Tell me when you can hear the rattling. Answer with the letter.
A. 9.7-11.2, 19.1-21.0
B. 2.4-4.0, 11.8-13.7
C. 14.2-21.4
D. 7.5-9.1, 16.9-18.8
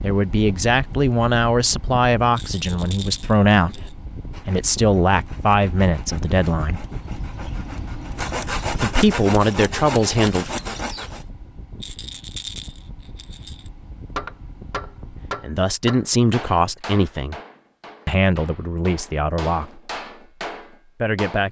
B.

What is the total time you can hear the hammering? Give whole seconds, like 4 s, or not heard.
7 s.